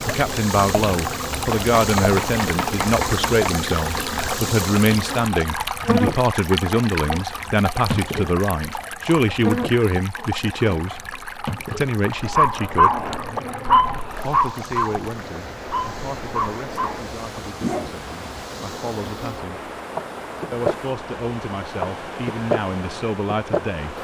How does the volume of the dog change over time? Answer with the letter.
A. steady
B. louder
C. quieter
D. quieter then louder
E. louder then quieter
C.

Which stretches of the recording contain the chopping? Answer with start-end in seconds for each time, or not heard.
1.5-3.5.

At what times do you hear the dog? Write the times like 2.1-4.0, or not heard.
12.1-17.9.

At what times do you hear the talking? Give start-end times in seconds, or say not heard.
0.1-13.1, 14.2-19.7, 20.5-23.9.